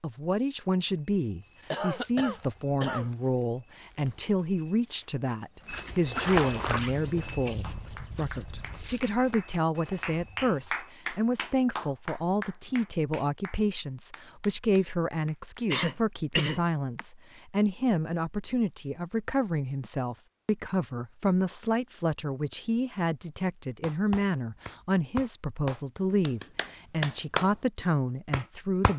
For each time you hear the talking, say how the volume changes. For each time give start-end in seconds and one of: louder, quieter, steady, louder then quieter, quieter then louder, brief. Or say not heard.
0.0-28.9 steady.